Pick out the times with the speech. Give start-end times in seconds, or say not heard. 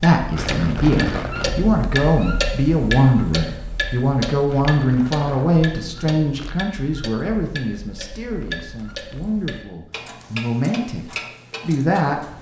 0.0-12.2.